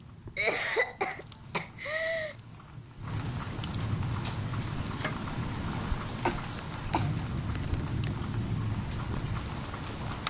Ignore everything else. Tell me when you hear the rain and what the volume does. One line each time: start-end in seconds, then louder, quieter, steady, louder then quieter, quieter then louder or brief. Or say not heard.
0.0-10.2 louder.